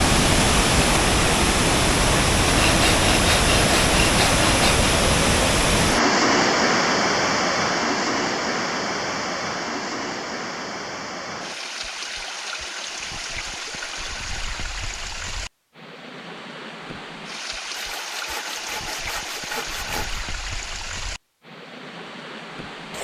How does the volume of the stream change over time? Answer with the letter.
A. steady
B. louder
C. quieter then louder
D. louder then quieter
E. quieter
E.